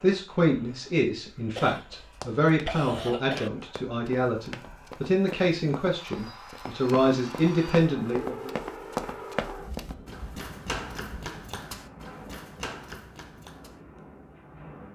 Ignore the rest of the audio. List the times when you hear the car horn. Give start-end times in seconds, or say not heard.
not heard.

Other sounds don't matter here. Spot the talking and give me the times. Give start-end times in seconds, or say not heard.
0.0-8.5.